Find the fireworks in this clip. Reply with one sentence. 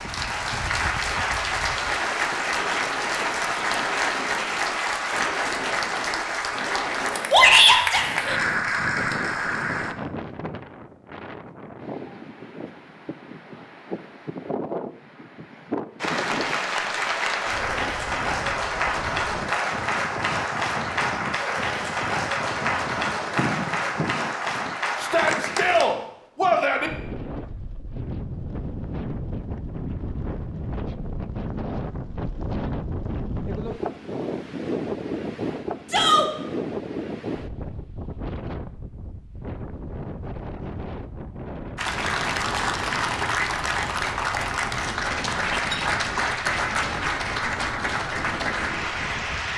You can't hear the fireworks here.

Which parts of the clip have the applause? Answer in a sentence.
You can hear the applause from 0.0 to 9.9 s, from 16.0 to 25.9 s and from 41.8 to 49.5 s.